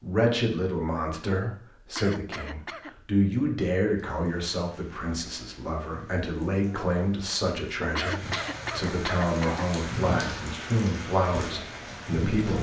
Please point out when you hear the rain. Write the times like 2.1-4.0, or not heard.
4.0-12.5.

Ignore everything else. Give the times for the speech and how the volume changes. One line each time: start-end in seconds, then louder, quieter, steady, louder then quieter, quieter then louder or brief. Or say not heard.
0.0-12.5 steady.